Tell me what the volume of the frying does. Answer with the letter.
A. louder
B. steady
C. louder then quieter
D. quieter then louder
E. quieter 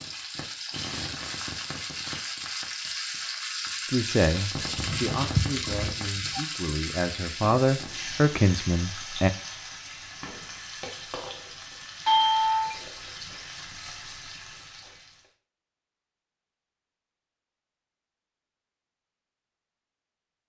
E.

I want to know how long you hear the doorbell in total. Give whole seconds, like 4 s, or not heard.
2 s.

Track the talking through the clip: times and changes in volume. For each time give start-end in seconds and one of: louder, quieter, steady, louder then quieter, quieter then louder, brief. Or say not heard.
3.8-9.3 quieter then louder.